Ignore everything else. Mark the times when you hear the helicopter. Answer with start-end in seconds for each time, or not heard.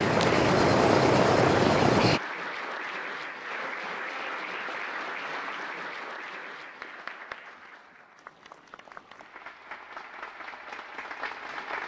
0.0-2.2.